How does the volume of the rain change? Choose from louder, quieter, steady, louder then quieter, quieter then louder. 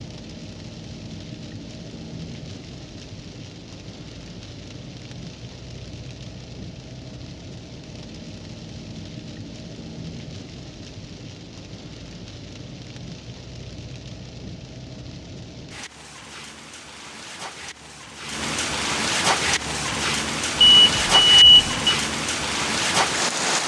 louder.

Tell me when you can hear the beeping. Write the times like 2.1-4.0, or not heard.
20.6-21.9.